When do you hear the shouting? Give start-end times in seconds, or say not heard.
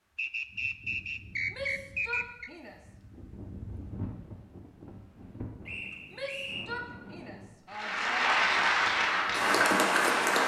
1.5-2.8, 6.1-8.4.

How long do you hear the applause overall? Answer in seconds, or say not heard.
3 s.